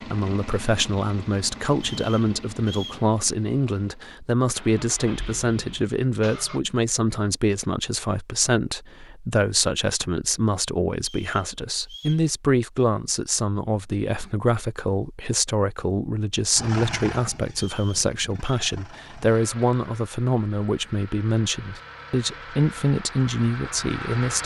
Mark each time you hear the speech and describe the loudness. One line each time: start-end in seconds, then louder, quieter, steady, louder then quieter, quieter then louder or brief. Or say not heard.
0.0-24.4 steady.